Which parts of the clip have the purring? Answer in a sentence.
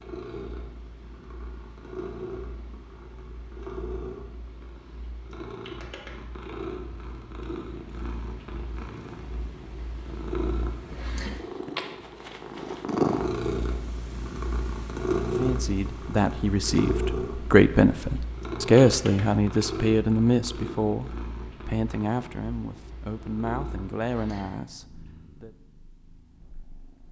You can hear the purring from 0.0 to 27.0 s.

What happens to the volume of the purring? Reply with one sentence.
The loudness of the purring goes up, then down.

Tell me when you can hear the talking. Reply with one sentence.
The talking can be heard from 15.3 to 25.5 s.